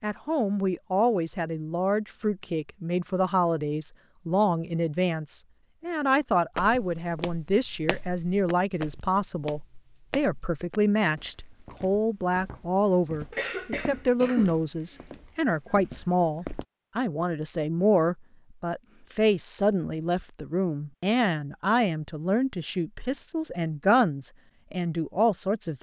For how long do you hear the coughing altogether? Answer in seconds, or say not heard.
2 s.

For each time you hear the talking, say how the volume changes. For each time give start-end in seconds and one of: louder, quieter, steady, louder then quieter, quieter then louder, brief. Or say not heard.
0.0-25.7 steady.